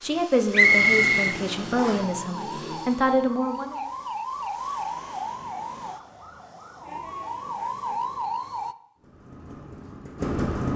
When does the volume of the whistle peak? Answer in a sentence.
The loudest moment of the whistle is at 1 second.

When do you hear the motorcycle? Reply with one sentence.
The motorcycle can be heard from 0.0 to 3.3 s and from 8.9 to 10.7 s.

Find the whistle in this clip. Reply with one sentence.
The whistle can be heard from 0.5 to 2.0 s.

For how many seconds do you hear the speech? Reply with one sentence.
The speech can be heard for 4 seconds in total.